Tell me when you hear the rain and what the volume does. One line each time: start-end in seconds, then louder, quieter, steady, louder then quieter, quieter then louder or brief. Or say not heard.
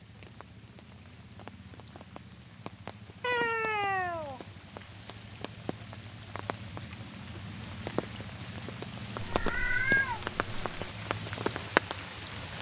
0.0-12.5 louder.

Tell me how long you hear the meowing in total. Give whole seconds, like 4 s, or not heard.
3 s.